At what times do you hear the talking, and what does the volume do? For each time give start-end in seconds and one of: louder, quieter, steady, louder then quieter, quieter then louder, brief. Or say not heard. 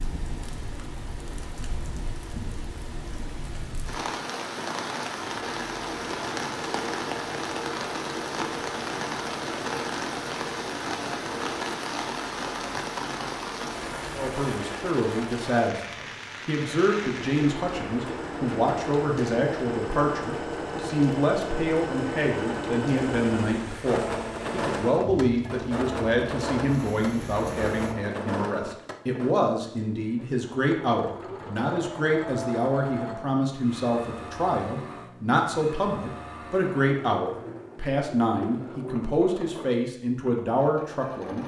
14.2-41.4 steady.